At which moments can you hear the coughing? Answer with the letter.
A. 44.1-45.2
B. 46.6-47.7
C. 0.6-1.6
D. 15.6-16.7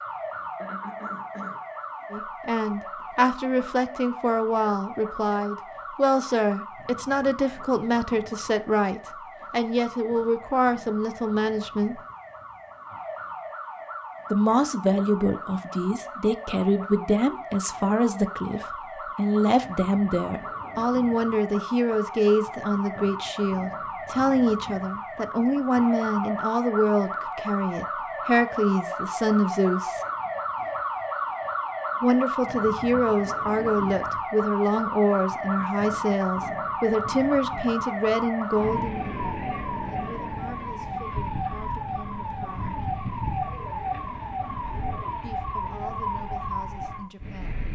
C.